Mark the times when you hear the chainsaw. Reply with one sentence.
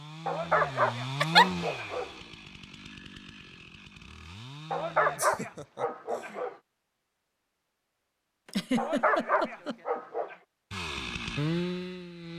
You can hear the chainsaw from 0.0 to 5.2 s and from 10.7 to 12.3 s.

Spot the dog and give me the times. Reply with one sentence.
The dog can be heard from 0.2 to 2.1 s, from 4.7 to 6.5 s and from 8.8 to 10.3 s.